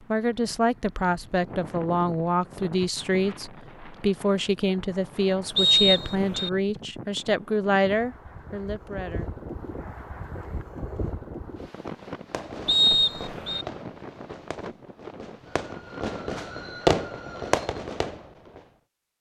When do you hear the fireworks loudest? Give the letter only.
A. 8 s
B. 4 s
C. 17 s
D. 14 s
C.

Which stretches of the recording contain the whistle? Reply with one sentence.
You can hear the whistle from 5.5 to 6.5 s and from 12.7 to 13.7 s.